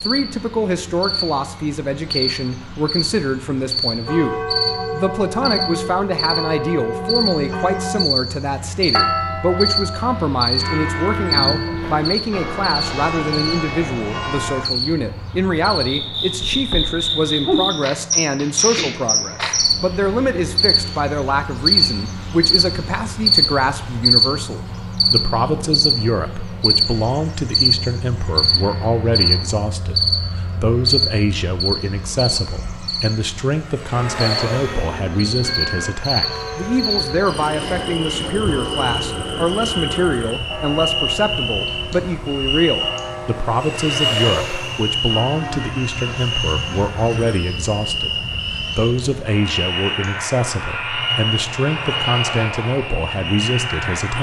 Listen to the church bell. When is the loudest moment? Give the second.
9 s.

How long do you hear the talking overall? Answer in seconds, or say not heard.
54 s.